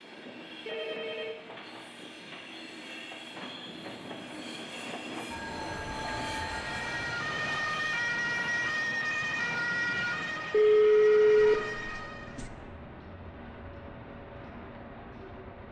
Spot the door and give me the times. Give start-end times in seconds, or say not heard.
not heard.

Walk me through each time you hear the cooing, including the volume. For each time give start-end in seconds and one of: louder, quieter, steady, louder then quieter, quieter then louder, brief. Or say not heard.
not heard.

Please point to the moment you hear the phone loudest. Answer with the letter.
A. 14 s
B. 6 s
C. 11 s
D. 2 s
C.